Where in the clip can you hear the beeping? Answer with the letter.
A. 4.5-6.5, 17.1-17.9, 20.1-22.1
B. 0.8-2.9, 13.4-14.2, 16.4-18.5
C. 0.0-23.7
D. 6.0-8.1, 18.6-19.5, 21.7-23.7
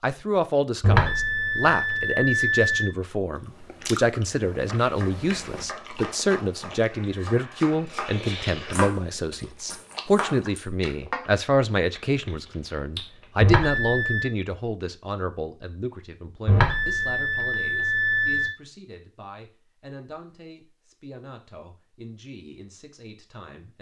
B.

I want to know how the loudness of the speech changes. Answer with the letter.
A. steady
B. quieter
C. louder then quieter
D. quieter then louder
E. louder
B.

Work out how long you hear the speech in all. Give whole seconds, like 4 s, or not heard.
24 s.